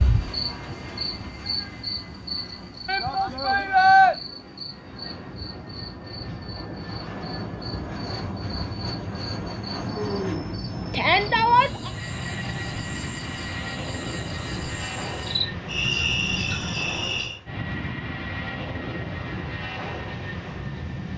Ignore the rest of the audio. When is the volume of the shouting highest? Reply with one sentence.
The volume of the shouting peaks at 4 seconds.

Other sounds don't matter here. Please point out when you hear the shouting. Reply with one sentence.
You can hear the shouting from 2.9 to 4.2 s and from 10.9 to 11.9 s.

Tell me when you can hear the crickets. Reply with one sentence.
The crickets can be heard from 0.0 to 17.4 s.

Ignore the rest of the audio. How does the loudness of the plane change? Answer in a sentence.
The loudness of the plane goes up.